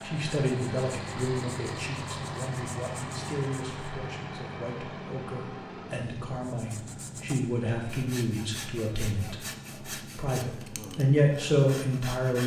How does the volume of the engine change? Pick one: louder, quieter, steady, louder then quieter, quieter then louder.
quieter.